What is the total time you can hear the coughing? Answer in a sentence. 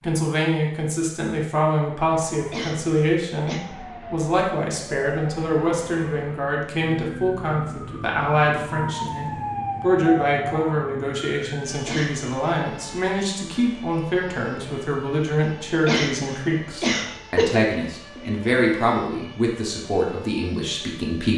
You can hear the coughing for 4 seconds altogether.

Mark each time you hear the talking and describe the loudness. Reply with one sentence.
The talking can be heard from 0.0 to 21.3 s, at a steady volume.